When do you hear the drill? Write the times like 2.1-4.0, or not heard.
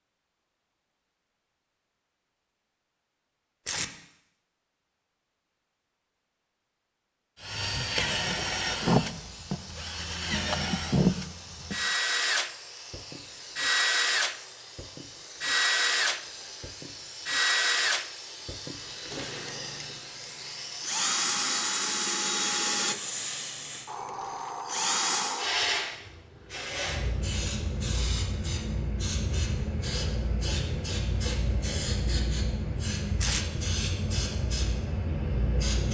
7.4-25.4.